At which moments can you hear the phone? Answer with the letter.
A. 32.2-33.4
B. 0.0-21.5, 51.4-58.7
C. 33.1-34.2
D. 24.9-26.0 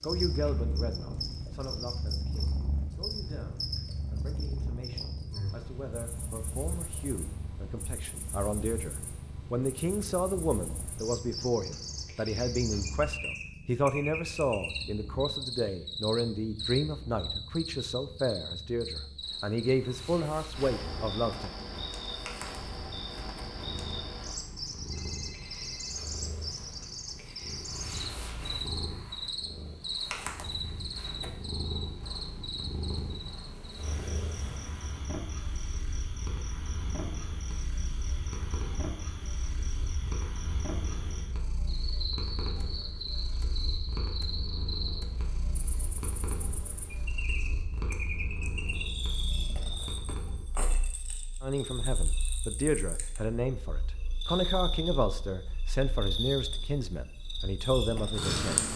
D.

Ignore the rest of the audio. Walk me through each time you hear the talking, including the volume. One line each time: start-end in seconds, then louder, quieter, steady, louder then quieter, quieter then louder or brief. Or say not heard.
0.0-21.5 louder
51.4-58.7 steady.